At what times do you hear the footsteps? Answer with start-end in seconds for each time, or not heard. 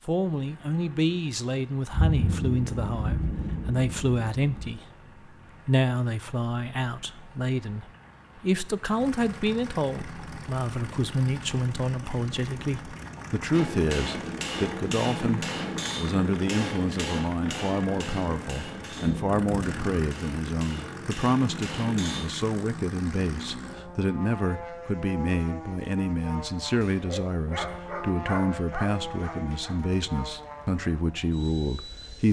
not heard.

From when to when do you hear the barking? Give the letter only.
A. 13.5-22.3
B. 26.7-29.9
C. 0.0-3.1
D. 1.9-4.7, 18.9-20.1
B.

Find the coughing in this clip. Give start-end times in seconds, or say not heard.
not heard.